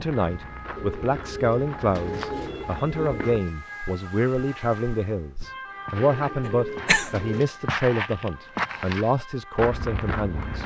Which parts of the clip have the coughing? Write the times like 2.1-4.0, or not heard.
6.4-7.1.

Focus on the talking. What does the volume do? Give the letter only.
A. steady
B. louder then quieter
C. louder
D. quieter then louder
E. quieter
A.